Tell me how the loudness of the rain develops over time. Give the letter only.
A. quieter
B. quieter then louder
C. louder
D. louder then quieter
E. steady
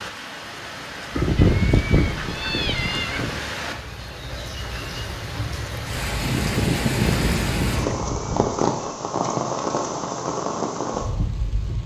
C.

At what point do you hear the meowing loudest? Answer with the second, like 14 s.
2 s.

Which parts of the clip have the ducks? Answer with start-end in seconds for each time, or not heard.
1.1-3.5, 6.2-8.0.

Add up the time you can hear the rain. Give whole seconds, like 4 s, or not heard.
12 s.